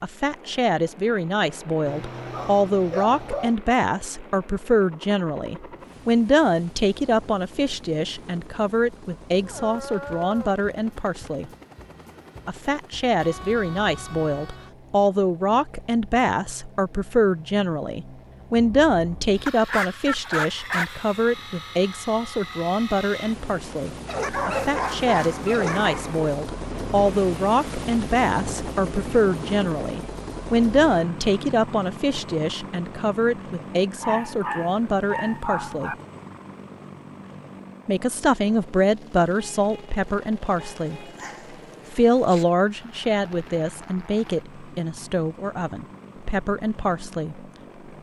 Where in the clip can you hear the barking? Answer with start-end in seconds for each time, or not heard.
1.9-3.5, 9.4-10.6, 19.4-21.1, 24.1-26.4, 34.0-36.0, 40.6-42.5.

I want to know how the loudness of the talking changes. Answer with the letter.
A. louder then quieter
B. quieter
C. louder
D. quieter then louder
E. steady
E.